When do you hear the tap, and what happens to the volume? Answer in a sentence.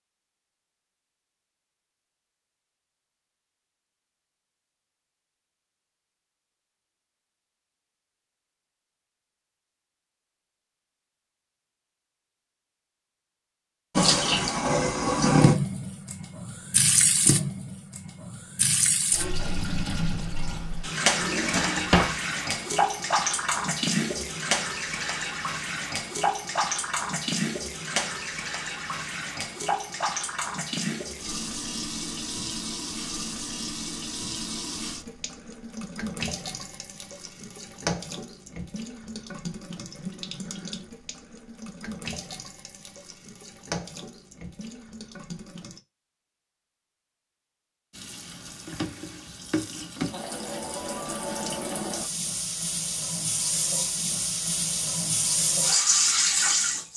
You can hear the tap from 13.9 to 45.8 s, getting quieter; and from 47.9 to 56.9 s, getting louder.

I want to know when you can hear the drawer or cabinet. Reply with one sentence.
You can hear the drawer or cabinet from 21.1 to 22.1 s.